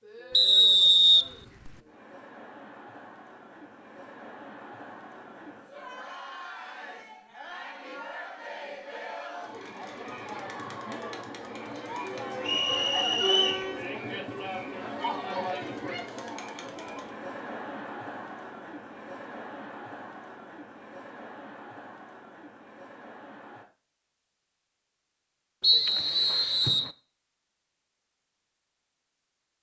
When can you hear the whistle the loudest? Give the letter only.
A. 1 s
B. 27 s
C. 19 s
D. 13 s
A.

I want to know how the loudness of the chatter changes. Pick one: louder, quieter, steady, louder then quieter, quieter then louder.
louder then quieter.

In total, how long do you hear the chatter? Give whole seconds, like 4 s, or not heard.
24 s.